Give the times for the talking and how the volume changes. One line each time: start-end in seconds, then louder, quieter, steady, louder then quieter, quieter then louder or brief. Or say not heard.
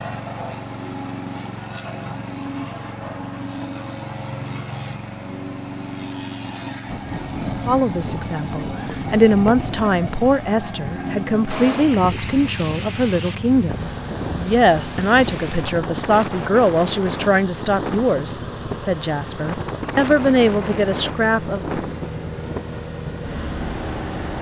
7.7-21.8 steady.